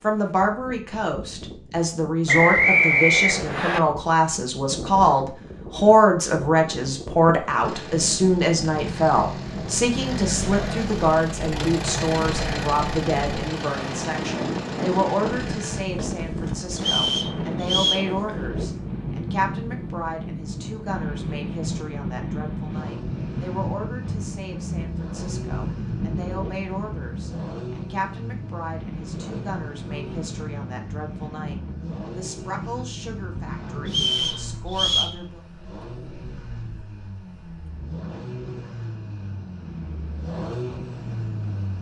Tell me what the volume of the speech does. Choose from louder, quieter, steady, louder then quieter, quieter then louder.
quieter.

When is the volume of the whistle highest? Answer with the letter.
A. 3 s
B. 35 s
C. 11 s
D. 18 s
A.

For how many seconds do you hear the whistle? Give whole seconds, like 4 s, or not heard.
4 s.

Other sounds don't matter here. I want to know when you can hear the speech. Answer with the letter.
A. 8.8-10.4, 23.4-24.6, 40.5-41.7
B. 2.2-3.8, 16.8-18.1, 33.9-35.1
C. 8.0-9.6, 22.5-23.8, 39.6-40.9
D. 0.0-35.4
D.